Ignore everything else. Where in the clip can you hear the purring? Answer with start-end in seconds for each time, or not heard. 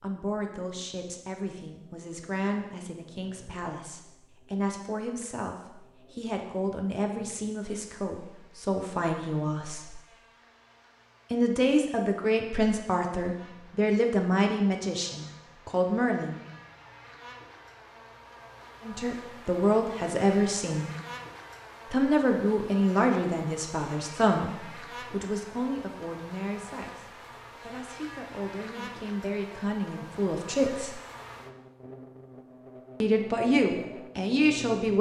not heard.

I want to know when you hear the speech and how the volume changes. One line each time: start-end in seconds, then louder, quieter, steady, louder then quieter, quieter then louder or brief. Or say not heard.
0.0-10.0 louder
11.3-16.4 steady
18.8-20.9 brief
21.9-31.0 quieter then louder
33.0-34.9 brief.